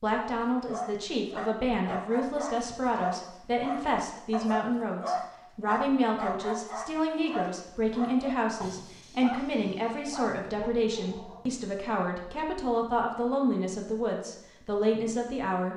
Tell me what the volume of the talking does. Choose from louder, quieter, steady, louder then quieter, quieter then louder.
steady.